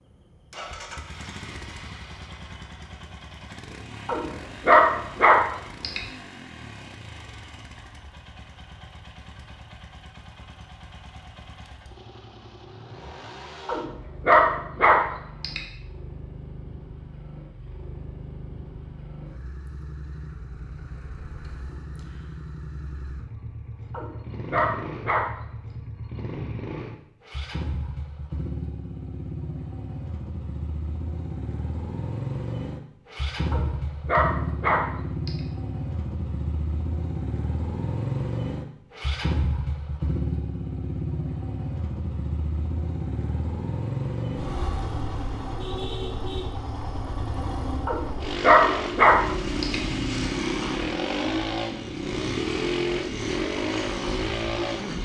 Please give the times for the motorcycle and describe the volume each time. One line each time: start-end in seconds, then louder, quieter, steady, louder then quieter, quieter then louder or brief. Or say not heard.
0.0-55.0 louder.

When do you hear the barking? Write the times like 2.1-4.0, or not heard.
4.0-6.0, 13.7-15.6, 23.9-25.3, 33.5-35.3, 47.9-49.8.